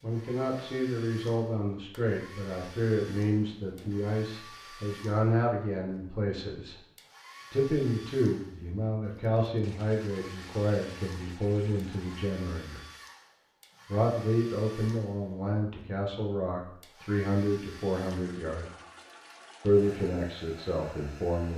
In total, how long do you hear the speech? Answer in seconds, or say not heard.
19 s.